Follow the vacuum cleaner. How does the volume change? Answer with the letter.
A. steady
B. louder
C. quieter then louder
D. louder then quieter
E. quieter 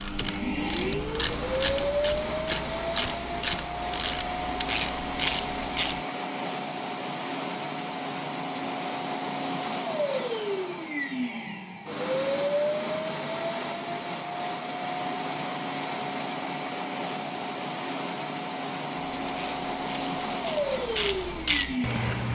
A.